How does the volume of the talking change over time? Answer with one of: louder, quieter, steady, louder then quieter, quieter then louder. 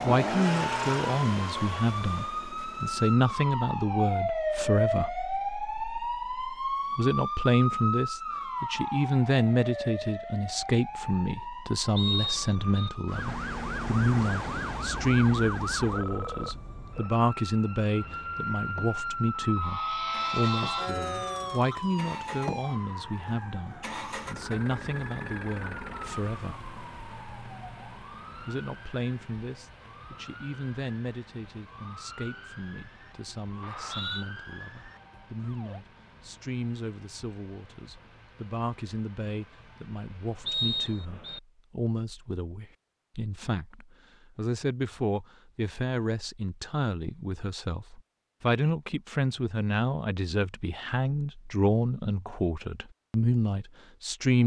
quieter then louder.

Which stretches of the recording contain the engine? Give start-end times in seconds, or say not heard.
0.0-3.1, 17.9-41.0.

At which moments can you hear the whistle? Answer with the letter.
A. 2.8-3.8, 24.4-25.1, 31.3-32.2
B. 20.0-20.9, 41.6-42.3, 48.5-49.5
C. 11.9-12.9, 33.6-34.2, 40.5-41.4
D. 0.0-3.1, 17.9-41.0
C.